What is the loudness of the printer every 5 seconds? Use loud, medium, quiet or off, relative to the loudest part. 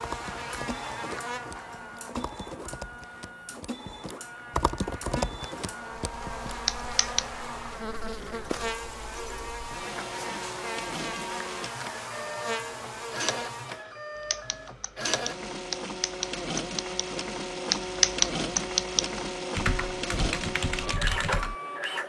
medium, medium, medium, loud, loud.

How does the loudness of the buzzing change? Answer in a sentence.
The volume of the buzzing goes down, then up.